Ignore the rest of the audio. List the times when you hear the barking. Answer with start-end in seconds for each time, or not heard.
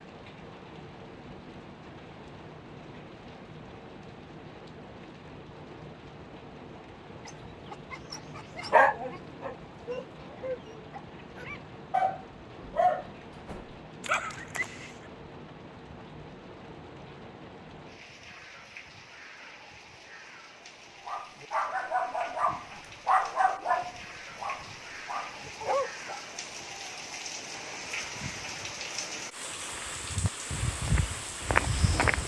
7.2-14.9, 21.1-26.2.